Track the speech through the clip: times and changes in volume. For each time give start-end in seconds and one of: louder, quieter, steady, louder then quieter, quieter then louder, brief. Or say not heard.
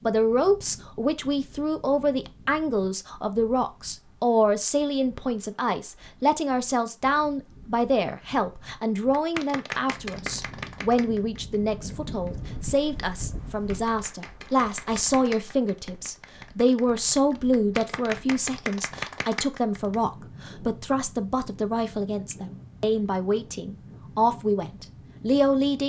0.0-25.8 steady.